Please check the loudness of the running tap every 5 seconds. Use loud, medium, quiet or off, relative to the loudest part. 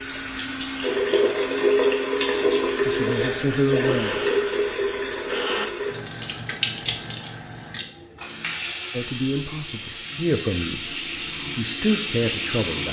loud, medium, medium.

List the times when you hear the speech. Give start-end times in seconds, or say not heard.
2.9-4.2, 8.9-12.8.